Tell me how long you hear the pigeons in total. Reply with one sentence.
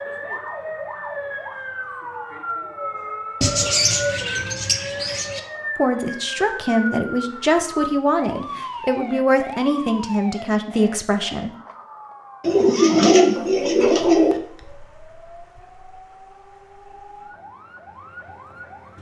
You can hear the pigeons for 4 seconds altogether.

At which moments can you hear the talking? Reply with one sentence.
You can hear the talking from 5.8 to 11.5 s.